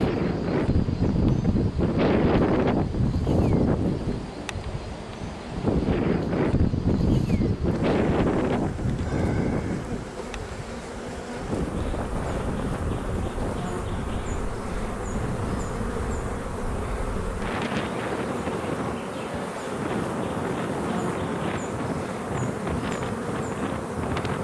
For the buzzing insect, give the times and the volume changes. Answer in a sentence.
You can hear the buzzing insect from 0.0 to 24.3 s, getting louder.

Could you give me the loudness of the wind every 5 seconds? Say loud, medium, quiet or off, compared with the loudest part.
loud, loud, medium, medium, medium.